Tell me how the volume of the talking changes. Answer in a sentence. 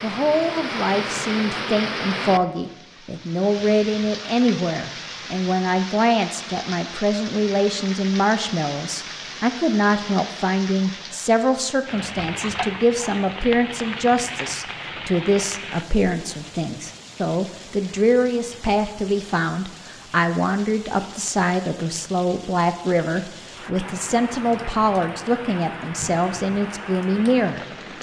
The volume of the talking stays about the same.